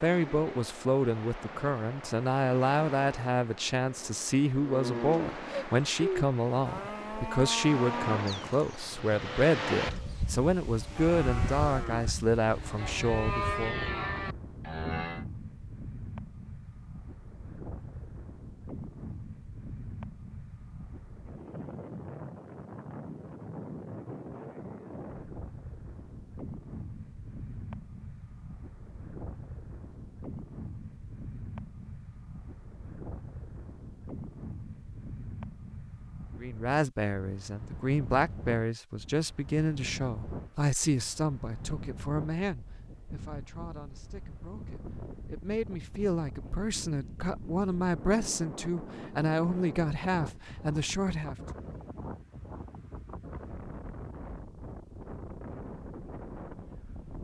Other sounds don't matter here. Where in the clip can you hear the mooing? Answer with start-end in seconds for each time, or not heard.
4.5-15.2.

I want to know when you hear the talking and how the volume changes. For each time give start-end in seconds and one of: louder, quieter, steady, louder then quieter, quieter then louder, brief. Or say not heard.
0.0-13.8 steady
36.4-51.4 quieter then louder.